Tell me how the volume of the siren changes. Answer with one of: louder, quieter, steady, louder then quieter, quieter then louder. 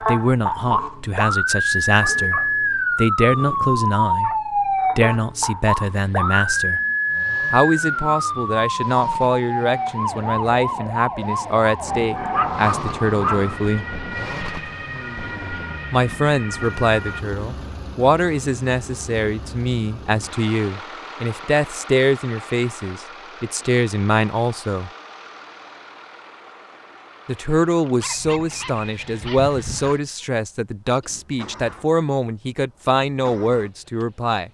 quieter.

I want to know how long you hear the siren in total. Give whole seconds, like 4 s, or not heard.
17 s.